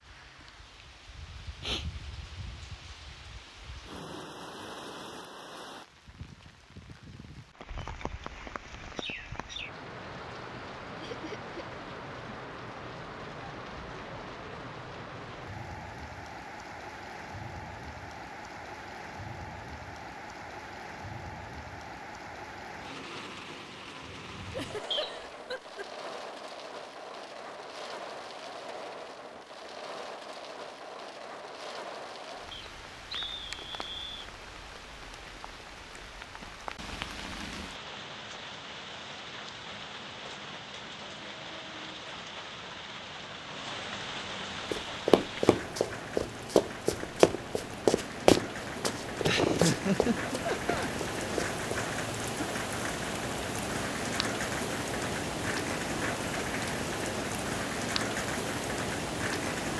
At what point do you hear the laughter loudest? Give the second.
50 s.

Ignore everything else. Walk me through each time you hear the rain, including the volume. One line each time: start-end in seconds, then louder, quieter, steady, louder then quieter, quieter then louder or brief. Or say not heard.
0.0-59.7 louder.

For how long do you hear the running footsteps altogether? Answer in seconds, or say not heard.
7 s.